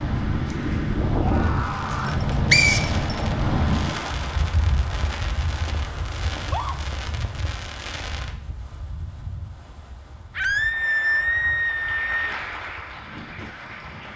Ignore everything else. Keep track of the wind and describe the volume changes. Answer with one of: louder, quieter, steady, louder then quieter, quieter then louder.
quieter.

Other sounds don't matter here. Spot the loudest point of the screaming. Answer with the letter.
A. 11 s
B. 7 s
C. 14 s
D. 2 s
A.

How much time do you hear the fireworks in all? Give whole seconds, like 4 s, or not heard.
7 s.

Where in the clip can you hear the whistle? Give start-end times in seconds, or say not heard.
2.0-3.1.